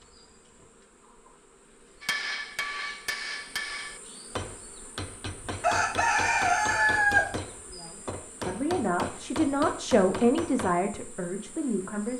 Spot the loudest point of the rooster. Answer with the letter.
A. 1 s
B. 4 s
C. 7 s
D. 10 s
C.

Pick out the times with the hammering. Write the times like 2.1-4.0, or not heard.
2.0-10.8.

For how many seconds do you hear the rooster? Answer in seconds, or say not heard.
2 s.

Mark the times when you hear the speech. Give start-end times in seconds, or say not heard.
7.7-12.1.